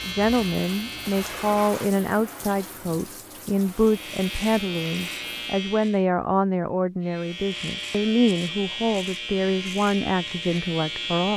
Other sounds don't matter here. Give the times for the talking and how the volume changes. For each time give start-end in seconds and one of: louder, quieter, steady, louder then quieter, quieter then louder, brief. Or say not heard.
0.0-11.3 steady.